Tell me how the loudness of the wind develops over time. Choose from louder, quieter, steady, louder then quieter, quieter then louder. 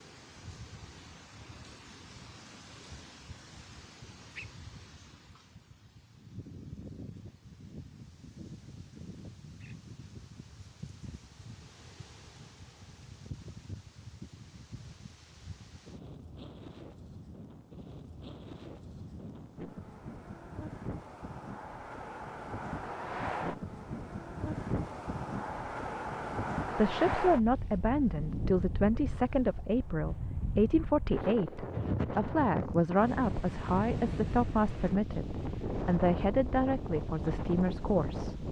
louder.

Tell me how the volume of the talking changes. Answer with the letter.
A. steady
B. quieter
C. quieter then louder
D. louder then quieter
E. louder
A.